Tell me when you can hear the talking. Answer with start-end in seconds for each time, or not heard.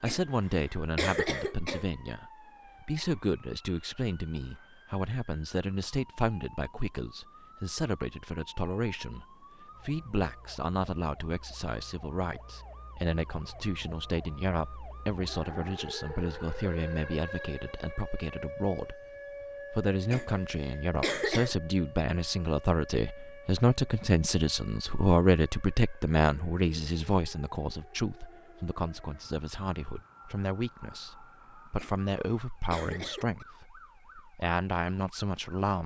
0.0-19.0, 19.7-35.8.